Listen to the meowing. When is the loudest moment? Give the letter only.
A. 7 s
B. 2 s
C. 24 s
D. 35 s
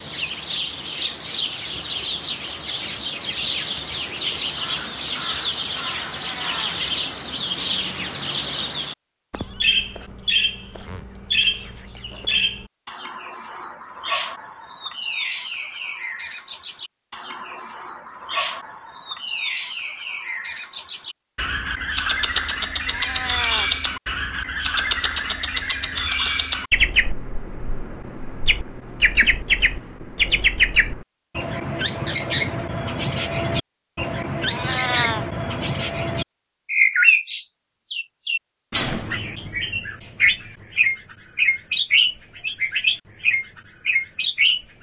D.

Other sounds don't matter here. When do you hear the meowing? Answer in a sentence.
You can hear the meowing from 6.2 to 6.8 s, from 22.9 to 23.7 s and from 34.5 to 35.2 s.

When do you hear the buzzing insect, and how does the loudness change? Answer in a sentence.
The buzzing insect can't be heard in this clip.